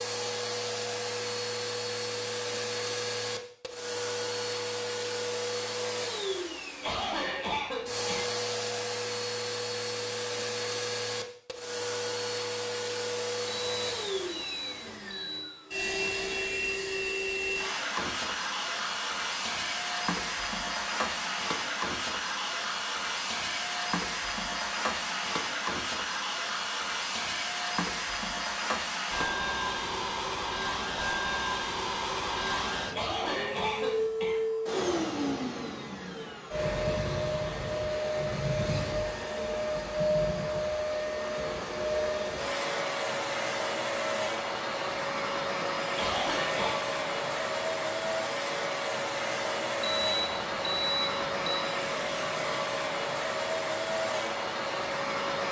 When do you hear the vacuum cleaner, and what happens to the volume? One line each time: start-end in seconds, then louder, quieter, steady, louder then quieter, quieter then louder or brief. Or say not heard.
0.0-55.4 steady.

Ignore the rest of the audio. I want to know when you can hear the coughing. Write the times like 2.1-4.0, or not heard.
6.8-8.3, 33.0-34.4, 46.0-46.8.